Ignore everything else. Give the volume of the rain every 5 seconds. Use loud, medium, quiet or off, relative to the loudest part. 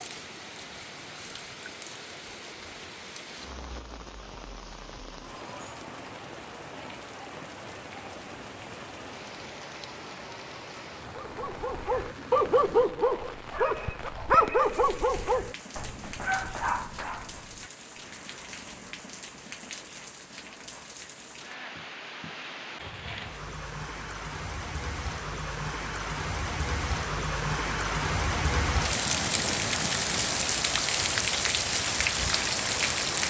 quiet, quiet, quiet, quiet, quiet, loud, loud.